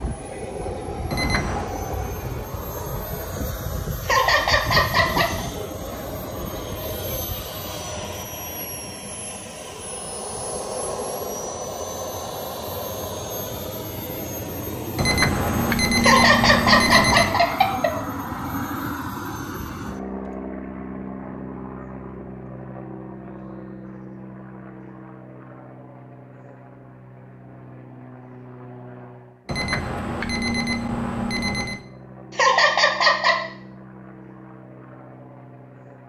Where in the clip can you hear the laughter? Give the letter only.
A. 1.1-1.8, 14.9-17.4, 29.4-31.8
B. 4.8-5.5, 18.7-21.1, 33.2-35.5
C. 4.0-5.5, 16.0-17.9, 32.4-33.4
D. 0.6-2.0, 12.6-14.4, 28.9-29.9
C.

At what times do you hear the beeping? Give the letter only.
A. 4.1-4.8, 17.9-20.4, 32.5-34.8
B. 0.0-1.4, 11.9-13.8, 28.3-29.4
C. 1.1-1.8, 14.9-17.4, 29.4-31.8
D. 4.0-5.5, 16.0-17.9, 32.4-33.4
C.